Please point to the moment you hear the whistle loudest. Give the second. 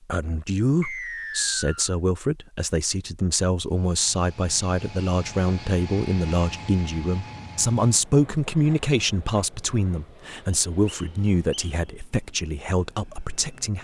1 s.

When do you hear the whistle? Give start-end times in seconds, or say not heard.
0.8-1.9, 10.5-11.8.